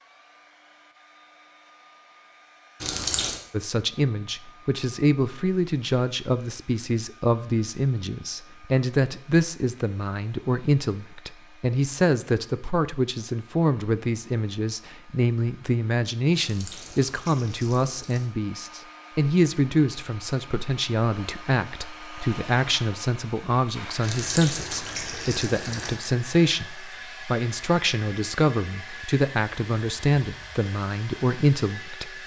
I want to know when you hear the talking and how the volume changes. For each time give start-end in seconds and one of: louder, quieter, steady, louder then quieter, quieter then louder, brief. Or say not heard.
3.5-32.2 steady.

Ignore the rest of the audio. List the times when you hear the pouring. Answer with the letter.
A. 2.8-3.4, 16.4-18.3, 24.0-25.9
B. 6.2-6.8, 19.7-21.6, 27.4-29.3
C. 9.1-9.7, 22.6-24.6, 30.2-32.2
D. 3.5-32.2
A.